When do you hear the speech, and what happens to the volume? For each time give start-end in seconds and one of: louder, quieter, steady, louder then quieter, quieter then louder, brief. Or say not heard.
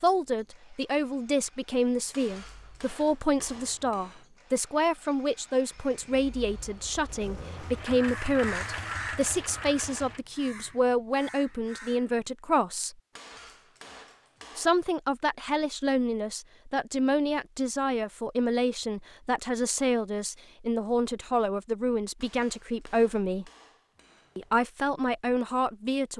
0.0-12.9 steady
14.6-23.4 steady
24.4-26.1 brief.